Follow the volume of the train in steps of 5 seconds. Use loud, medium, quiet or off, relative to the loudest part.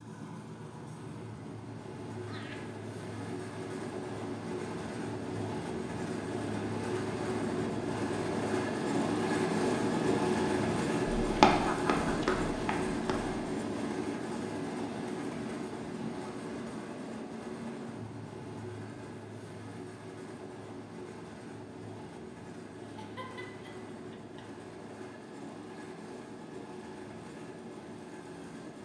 medium, loud, loud, medium, quiet, quiet.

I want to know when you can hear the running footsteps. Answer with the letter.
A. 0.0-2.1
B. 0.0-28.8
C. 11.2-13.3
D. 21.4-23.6
C.